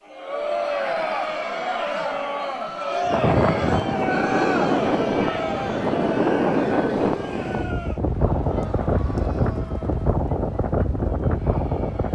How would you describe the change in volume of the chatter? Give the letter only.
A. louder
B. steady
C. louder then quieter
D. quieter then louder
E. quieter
E.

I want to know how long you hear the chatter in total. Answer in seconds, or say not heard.
12 s.